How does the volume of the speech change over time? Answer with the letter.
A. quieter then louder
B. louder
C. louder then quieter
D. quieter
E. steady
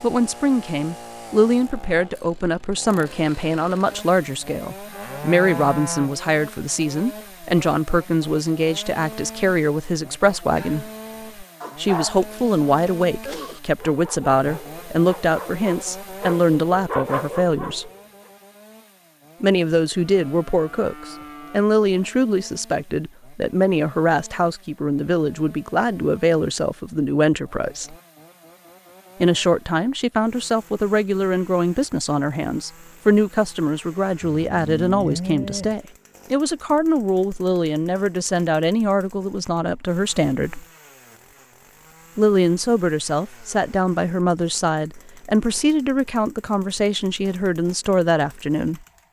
E.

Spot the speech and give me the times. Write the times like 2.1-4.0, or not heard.
0.0-10.9, 11.8-17.9, 19.4-27.9, 29.2-40.6, 42.1-48.8.